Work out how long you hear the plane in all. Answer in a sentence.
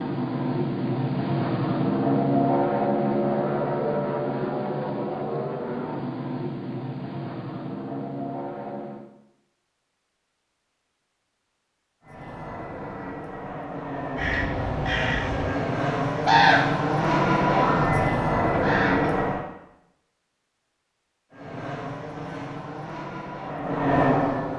The plane can be heard for 20 seconds in total.